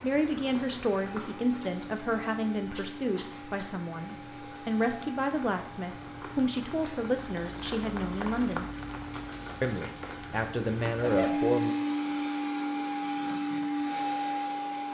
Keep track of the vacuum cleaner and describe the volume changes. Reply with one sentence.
The loudness of the vacuum cleaner goes up.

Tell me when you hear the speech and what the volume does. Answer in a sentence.
You can hear the speech from 0.0 to 8.7 s, at a steady volume; and briefly from 9.6 to 11.8 s.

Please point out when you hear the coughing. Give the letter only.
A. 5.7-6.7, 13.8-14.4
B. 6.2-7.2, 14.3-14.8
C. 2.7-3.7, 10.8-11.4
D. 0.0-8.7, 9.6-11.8
C.